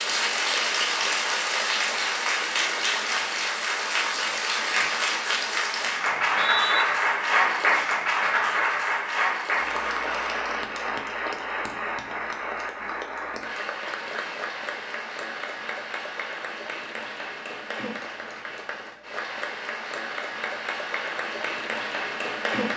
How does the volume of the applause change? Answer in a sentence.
The volume of the applause goes down.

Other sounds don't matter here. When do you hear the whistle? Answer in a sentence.
You can hear the whistle from 6.0 to 6.8 s.